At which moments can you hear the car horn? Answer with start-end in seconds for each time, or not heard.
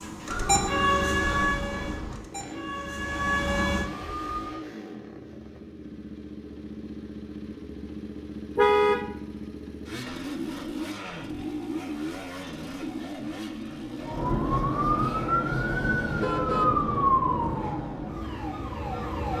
0.2-2.2, 8.6-9.1, 16.0-17.8.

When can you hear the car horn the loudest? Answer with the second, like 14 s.
9 s.